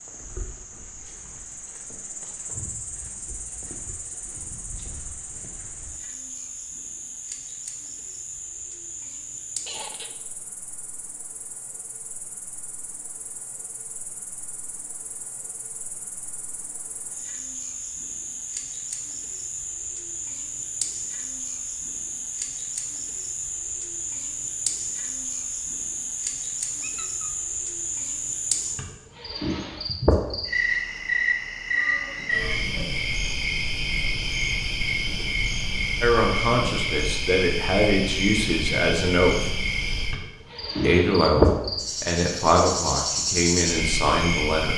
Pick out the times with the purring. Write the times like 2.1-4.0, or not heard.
not heard.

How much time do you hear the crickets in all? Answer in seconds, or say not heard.
45 s.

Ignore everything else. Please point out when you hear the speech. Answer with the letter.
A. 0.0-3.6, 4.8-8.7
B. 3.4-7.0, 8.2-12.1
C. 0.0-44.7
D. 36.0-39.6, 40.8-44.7
D.